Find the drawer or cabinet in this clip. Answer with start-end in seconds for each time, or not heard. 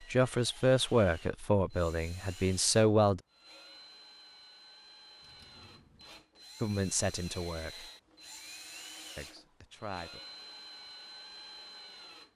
5.2-6.2.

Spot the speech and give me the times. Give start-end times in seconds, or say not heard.
0.1-3.2, 6.6-7.9, 9.2-10.2.